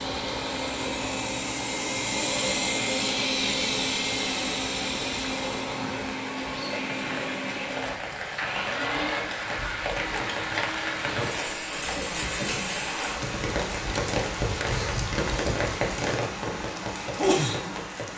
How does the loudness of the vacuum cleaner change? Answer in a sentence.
The volume of the vacuum cleaner goes down.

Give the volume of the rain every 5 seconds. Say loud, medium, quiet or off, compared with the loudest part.
medium, medium, loud, loud.